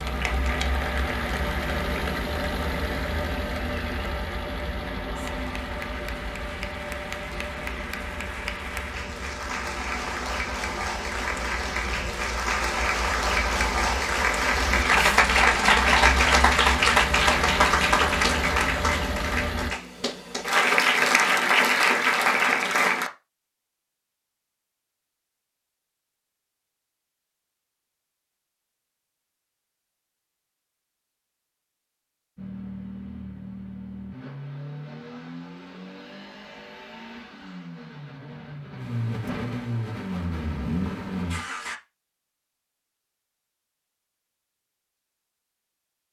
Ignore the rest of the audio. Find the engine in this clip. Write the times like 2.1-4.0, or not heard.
0.0-19.7, 32.4-41.8.